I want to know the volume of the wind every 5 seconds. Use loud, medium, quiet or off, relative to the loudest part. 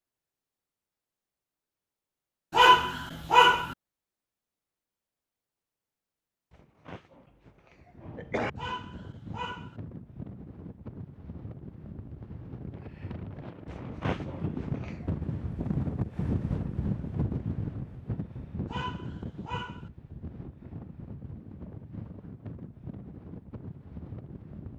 off, medium, medium, loud, medium.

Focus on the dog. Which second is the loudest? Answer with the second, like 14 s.
3 s.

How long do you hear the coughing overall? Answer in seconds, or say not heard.
3 s.